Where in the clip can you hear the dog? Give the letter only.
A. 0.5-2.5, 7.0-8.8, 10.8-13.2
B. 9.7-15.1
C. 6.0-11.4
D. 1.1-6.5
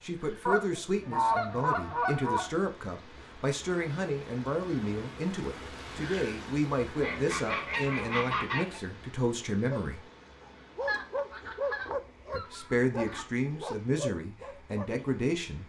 B.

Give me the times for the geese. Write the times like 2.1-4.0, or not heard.
0.5-2.5, 7.0-8.8, 10.8-13.2.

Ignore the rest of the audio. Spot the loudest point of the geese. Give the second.
1 s.